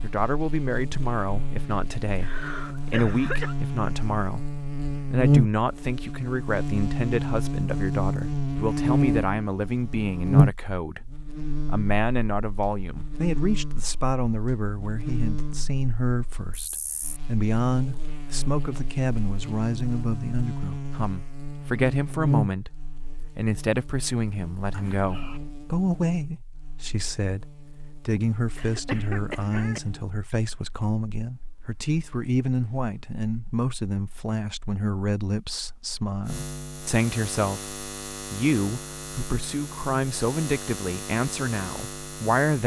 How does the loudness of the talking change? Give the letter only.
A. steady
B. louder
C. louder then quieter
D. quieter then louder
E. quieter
A.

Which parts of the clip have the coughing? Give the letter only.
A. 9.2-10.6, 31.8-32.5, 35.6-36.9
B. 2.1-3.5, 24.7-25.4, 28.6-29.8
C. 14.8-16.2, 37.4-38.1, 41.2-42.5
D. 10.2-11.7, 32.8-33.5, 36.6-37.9
B.